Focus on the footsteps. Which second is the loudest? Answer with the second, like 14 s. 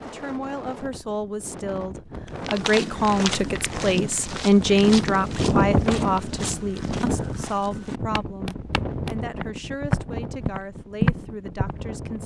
11 s.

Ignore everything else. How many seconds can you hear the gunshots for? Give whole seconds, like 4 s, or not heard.
2 s.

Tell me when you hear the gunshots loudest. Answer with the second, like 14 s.
6 s.